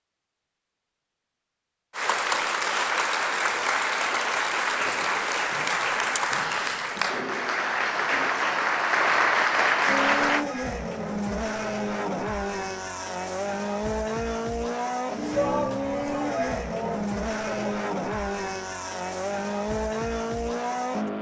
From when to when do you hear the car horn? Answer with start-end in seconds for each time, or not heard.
not heard.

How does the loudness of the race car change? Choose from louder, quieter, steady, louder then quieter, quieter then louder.
steady.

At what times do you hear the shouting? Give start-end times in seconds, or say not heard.
15.3-17.8.